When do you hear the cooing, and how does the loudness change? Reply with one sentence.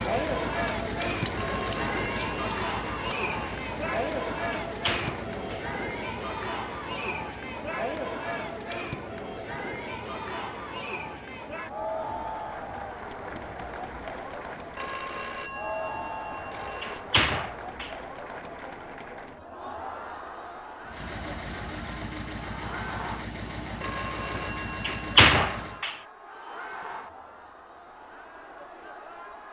The cooing can't be heard in this clip.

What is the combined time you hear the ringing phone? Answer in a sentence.
The ringing phone can be heard for 7 seconds in total.